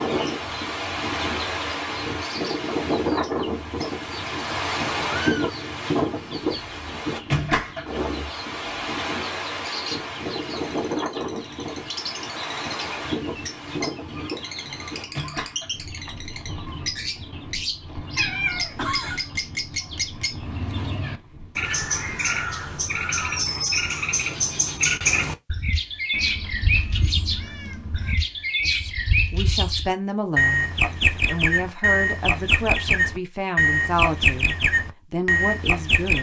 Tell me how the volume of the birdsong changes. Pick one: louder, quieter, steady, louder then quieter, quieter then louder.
louder.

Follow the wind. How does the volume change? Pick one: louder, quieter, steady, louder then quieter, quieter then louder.
quieter.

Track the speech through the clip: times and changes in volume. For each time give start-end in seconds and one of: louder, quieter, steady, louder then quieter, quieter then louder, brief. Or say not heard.
28.6-36.1 steady.